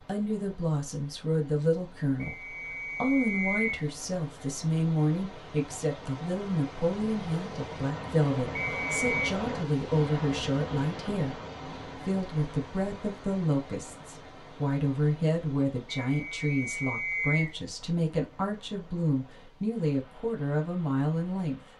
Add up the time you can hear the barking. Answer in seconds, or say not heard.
not heard.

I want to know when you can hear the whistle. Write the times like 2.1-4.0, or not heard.
2.2-3.9, 8.6-9.3, 16.0-17.6.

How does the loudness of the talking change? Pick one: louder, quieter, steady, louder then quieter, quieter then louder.
steady.